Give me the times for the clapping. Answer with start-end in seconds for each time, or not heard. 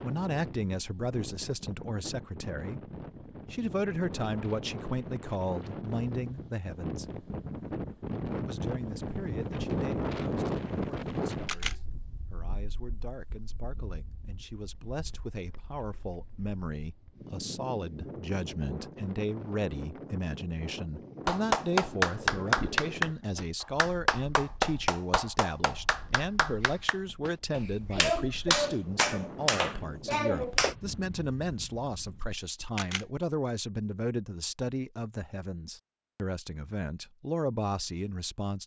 21.2-30.8.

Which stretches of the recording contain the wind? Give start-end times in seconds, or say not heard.
0.0-32.4.